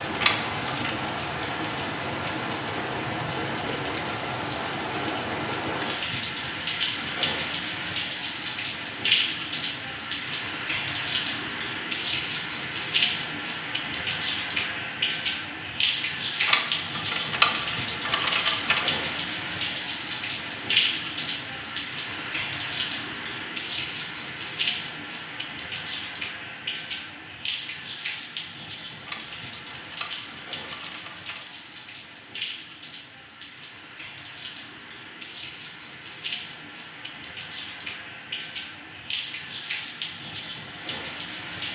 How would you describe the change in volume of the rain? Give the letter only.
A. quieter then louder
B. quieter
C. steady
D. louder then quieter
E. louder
B.